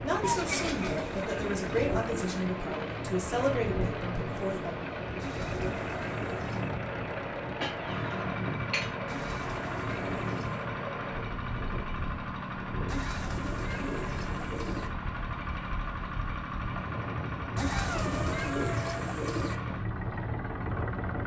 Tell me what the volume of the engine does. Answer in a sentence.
The loudness of the engine stays about the same.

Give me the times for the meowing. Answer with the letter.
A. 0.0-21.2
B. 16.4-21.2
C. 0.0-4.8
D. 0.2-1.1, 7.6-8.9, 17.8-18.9
D.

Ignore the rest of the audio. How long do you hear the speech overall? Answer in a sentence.
The speech can be heard for 5 seconds in total.